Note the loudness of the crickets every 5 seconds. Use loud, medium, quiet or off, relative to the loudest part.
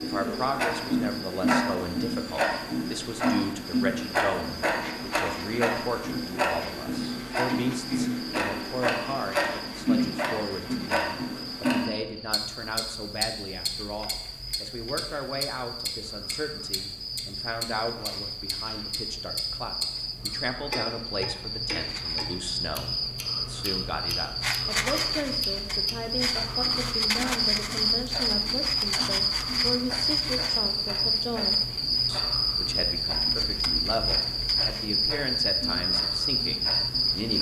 quiet, quiet, quiet, medium, medium, loud, loud, loud.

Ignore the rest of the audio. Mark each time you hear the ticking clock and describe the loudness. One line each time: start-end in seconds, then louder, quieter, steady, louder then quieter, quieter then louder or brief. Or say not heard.
0.0-37.3 quieter.